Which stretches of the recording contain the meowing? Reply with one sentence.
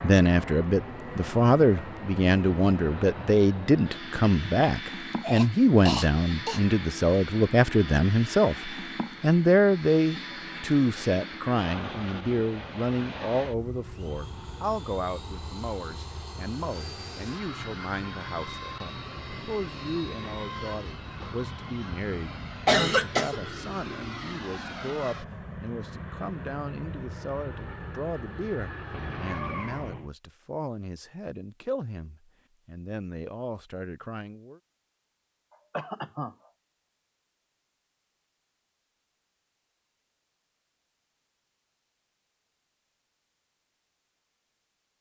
You can hear the meowing from 20.2 to 20.8 s and from 28.9 to 30.1 s.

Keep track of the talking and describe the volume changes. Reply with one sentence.
The loudness of the talking goes down.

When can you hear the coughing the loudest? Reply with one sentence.
The loudest moment of the coughing is at 23 seconds.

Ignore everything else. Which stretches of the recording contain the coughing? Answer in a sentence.
The coughing can be heard from 5.2 to 6.6 s, from 22.6 to 23.4 s and from 35.7 to 36.4 s.